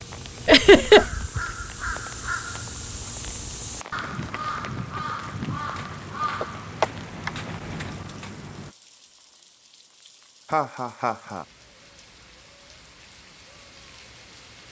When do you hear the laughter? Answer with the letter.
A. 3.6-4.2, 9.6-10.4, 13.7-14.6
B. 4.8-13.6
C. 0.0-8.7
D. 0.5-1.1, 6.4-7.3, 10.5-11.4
D.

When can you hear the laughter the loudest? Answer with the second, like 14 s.
1 s.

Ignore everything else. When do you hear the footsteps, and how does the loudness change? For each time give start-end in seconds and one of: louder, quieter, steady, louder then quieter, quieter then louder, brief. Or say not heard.
not heard.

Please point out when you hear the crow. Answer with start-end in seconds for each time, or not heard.
0.0-8.7.